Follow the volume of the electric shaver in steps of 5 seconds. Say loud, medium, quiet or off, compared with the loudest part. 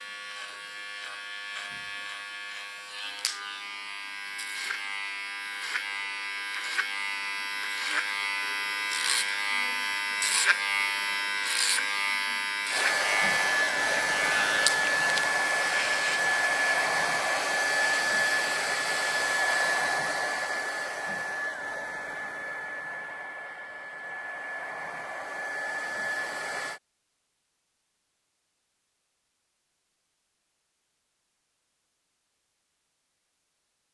medium, loud, loud, medium, off, off, off.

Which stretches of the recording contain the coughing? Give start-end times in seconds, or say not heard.
not heard.